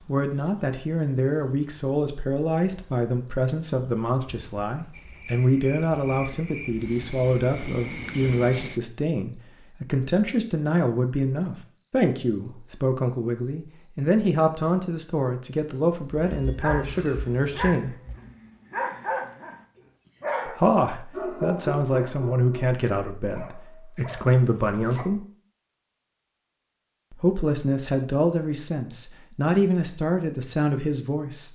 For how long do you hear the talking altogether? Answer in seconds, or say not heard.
27 s.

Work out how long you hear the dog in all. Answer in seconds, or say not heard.
8 s.